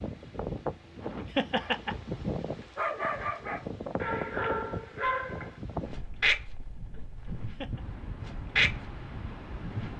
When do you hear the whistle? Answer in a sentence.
You can't hear the whistle here.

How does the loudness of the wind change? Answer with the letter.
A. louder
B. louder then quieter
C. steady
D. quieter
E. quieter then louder
E.